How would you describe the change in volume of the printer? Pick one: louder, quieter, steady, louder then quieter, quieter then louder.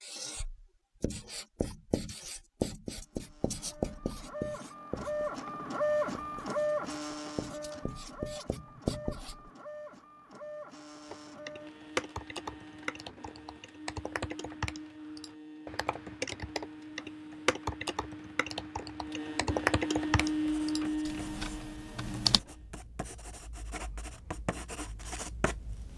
quieter then louder.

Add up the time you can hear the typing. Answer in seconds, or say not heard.
11 s.